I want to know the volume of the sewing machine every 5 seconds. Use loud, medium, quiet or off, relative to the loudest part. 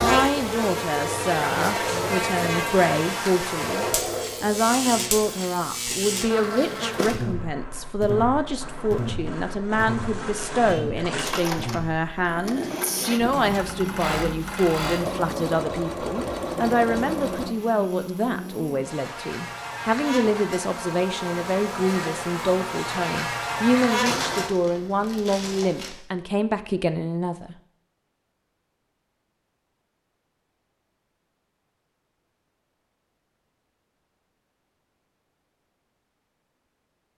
loud, medium, loud, loud, off, off, off, off.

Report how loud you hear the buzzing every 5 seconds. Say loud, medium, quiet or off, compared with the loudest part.
loud, loud, medium, medium, loud, off, off, off.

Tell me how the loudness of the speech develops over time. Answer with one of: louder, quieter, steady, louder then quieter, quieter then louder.
steady.